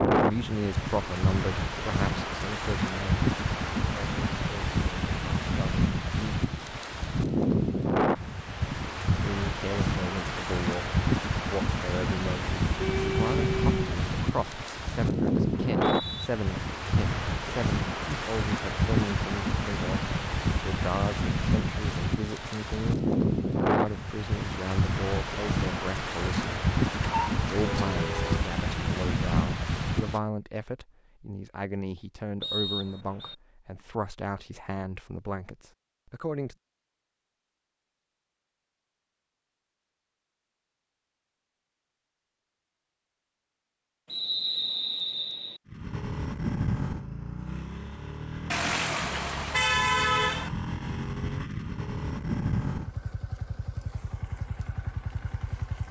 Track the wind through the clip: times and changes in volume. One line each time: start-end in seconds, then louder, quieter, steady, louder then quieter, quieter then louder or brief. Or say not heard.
0.0-30.2 steady.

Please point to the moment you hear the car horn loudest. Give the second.
50 s.